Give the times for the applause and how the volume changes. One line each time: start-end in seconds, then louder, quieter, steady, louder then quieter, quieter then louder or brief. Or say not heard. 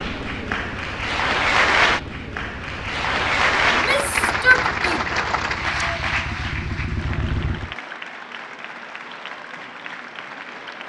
0.0-10.8 quieter.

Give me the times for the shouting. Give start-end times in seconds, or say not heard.
3.7-5.0.